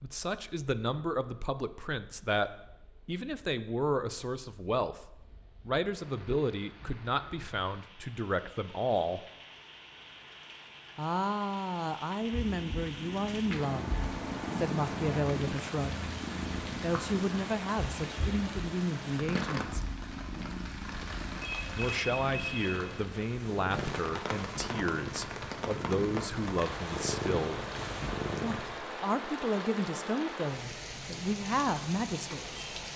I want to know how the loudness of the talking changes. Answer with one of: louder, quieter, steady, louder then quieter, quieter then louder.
steady.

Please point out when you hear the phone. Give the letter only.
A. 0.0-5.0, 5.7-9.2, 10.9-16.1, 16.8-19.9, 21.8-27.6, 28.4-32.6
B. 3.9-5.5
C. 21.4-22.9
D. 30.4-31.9
C.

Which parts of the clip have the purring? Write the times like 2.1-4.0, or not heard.
12.2-28.9.